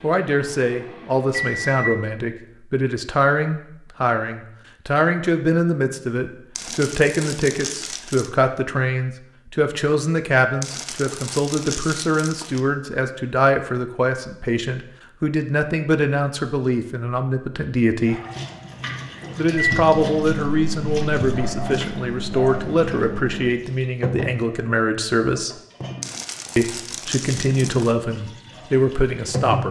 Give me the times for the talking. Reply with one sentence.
The talking can be heard from 0.0 to 18.2 s, from 19.4 to 25.6 s and from 26.6 to 29.6 s.